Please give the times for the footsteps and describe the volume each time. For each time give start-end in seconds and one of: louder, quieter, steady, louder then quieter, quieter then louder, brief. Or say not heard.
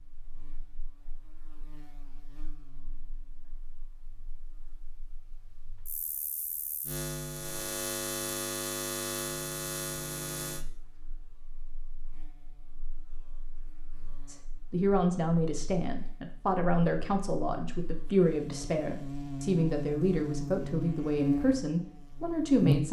not heard.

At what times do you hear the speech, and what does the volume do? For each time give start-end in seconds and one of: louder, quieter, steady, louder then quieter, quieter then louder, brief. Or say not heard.
14.2-22.8 steady.